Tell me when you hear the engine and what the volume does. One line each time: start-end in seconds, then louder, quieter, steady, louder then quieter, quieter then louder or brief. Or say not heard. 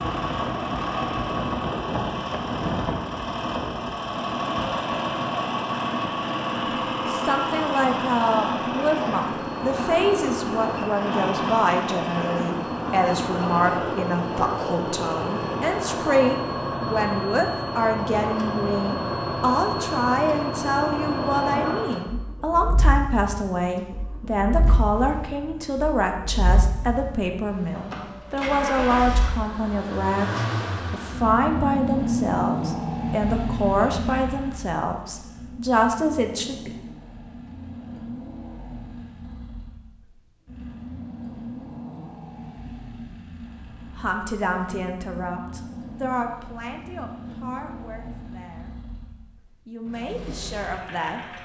0.0-51.4 quieter.